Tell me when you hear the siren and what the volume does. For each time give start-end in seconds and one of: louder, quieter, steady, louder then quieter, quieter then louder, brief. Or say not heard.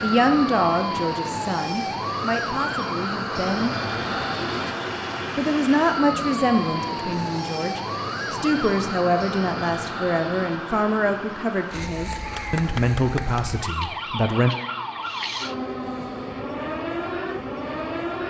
0.0-18.2 steady.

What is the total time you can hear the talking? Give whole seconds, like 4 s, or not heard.
13 s.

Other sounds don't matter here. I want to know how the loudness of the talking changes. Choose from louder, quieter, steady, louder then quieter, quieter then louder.
steady.